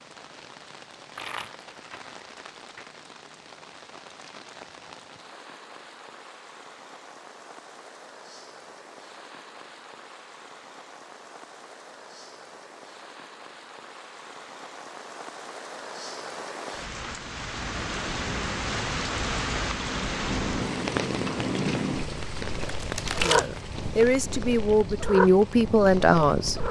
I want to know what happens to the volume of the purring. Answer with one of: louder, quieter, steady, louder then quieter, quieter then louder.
louder.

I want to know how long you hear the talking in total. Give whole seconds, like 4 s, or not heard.
3 s.